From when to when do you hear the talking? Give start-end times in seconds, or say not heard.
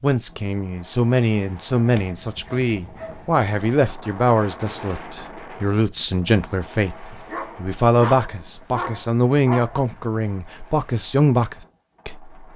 0.0-12.5.